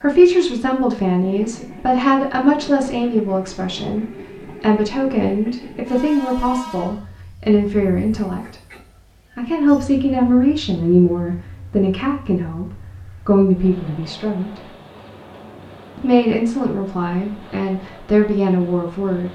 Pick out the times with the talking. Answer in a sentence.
You can hear the talking from 0.0 to 8.6 s, from 9.3 to 14.5 s and from 15.9 to 19.2 s.